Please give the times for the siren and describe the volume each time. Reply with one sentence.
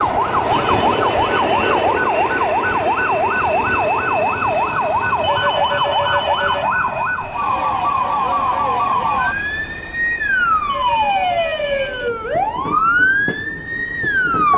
You can hear the siren from 0.0 to 14.5 s, at a steady volume.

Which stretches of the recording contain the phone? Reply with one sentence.
The phone can be heard from 0.5 to 1.9 s, from 5.2 to 6.7 s and from 10.7 to 12.1 s.